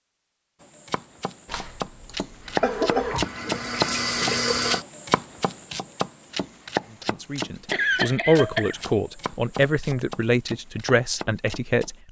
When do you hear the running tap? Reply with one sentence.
The running tap can be heard from 2.4 to 4.8 s.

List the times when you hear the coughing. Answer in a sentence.
You can hear the coughing from 1.5 to 3.2 s and from 7.7 to 8.8 s.